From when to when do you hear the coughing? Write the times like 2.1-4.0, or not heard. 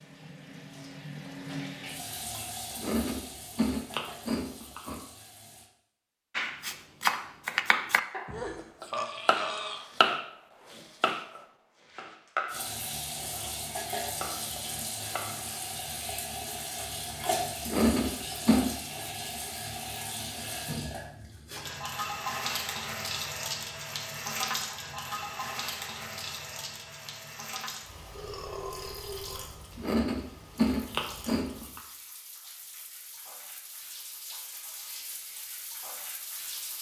not heard.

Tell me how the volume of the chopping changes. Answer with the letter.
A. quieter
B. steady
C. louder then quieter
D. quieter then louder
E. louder
A.